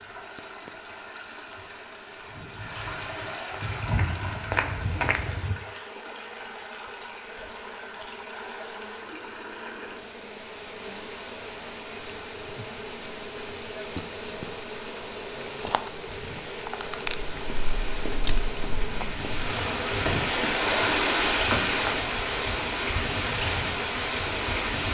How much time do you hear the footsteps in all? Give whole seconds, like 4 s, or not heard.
7 s.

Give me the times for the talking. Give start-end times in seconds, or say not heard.
not heard.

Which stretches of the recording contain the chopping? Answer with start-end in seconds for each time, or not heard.
not heard.